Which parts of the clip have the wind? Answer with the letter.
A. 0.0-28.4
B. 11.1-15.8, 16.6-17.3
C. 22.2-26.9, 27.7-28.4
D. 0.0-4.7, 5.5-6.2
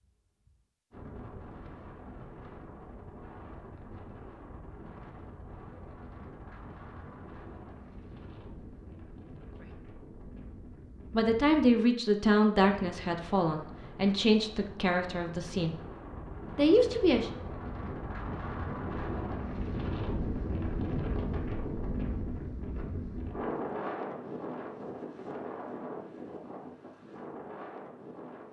A.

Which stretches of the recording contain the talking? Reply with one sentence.
You can hear the talking from 11.1 to 15.8 s and from 16.6 to 17.3 s.